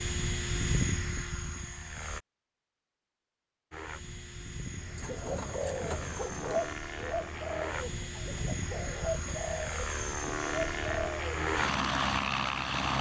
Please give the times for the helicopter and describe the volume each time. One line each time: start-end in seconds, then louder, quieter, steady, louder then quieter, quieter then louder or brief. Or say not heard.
0.0-2.2 brief
3.7-12.9 louder.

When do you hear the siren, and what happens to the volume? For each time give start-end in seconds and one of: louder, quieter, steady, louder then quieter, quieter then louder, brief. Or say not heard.
not heard.